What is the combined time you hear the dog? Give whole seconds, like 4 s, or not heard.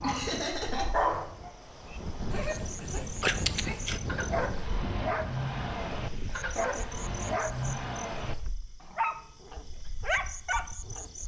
11 s.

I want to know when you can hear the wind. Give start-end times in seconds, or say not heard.
0.0-6.8.